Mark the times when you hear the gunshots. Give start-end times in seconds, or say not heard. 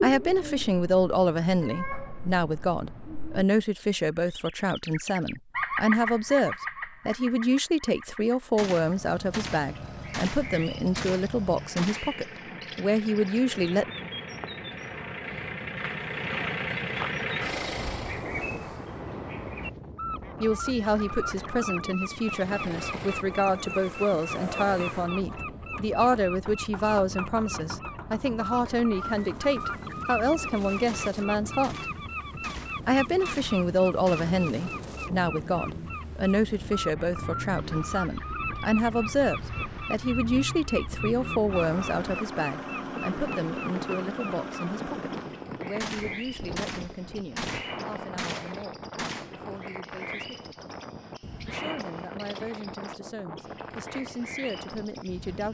8.6-12.2, 30.9-34.4, 45.8-49.3.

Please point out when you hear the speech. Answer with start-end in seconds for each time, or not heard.
0.0-13.9, 20.4-31.9, 32.9-50.8, 51.5-55.4.